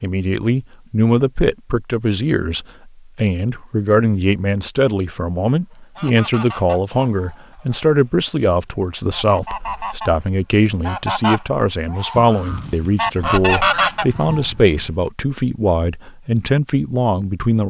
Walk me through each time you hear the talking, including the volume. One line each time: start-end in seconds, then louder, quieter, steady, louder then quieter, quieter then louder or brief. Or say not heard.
0.0-17.6 steady.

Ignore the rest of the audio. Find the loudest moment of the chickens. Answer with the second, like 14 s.
14 s.